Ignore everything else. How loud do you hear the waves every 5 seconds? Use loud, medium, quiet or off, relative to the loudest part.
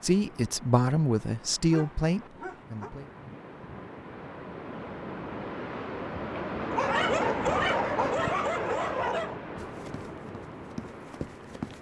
medium, loud, medium.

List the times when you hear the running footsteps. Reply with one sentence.
The running footsteps can be heard from 9.6 to 11.7 s.